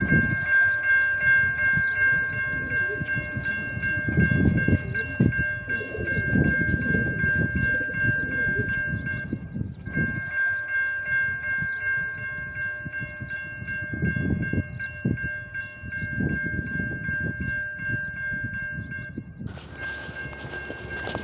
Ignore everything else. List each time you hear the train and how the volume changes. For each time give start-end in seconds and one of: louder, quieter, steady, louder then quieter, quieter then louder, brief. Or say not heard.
0.0-21.1 quieter.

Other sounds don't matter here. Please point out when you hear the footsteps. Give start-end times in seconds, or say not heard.
19.4-21.1.